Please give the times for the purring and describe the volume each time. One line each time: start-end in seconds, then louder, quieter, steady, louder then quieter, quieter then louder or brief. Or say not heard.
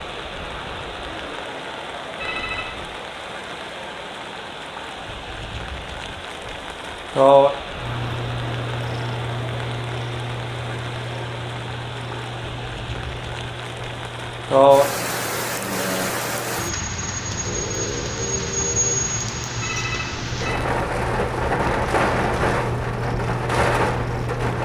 7.8-24.6 quieter then louder.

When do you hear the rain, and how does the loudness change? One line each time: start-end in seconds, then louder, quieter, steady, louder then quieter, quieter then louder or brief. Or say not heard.
0.0-24.6 louder.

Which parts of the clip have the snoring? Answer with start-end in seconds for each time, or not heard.
17.4-19.1.